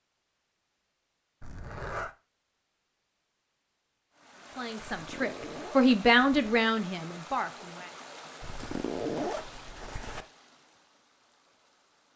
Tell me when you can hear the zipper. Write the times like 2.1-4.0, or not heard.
1.4-2.1, 4.8-6.6, 8.4-10.2.